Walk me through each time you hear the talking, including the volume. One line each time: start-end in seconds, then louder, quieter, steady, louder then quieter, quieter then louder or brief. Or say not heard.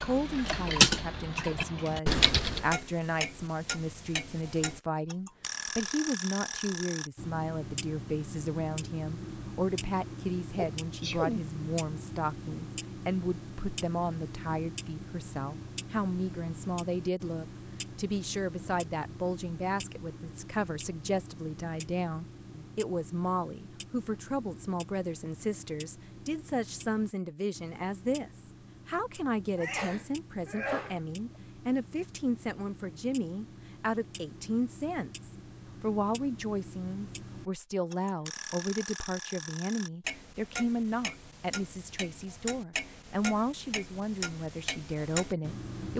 0.0-45.9 steady.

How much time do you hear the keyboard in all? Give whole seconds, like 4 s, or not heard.
3 s.